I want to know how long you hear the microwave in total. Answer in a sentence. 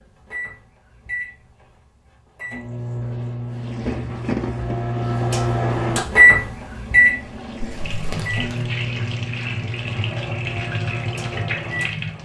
The microwave can be heard for 12 seconds in total.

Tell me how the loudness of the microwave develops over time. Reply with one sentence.
The loudness of the microwave goes up, then down.